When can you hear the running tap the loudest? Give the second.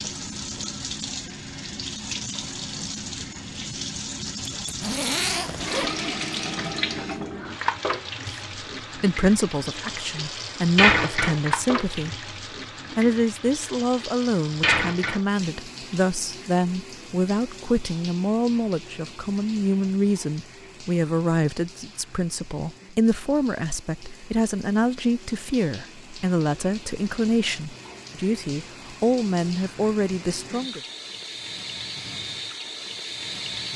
11 s.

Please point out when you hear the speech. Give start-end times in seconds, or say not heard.
8.9-12.2, 12.9-30.8.